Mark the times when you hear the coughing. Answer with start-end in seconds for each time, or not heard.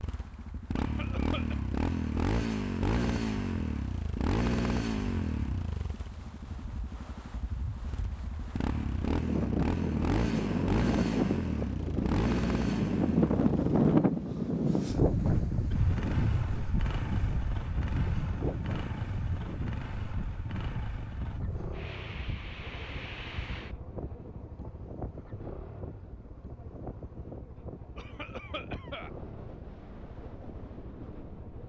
0.8-1.6, 27.9-29.1.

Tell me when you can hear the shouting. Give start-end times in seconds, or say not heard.
not heard.